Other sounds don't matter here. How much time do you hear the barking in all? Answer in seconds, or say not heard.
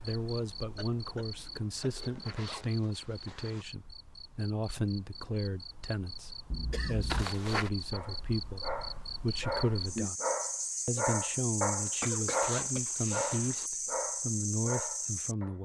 8 s.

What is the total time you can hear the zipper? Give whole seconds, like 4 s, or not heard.
4 s.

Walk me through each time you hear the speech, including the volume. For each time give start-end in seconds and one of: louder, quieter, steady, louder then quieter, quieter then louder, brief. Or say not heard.
0.0-10.2 steady
10.8-15.6 steady.